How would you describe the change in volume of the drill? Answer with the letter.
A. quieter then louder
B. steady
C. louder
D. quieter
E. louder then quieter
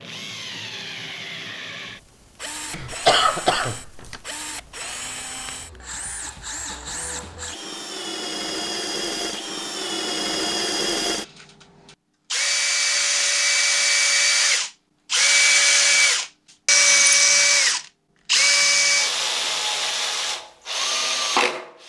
C.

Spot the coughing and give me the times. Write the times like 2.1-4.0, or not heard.
2.7-4.2.